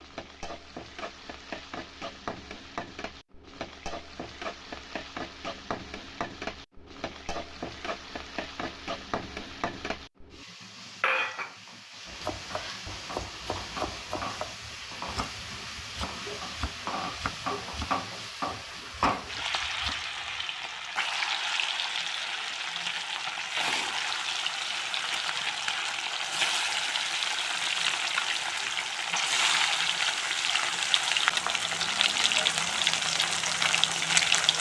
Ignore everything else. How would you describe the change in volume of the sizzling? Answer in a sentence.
The volume of the sizzling goes up.